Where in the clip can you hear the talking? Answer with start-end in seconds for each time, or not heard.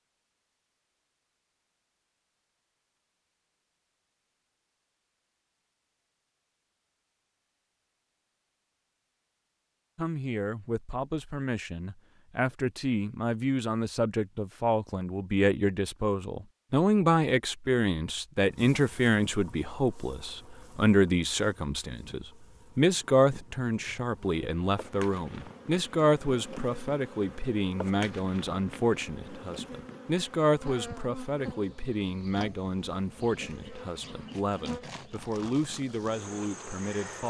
9.9-37.2.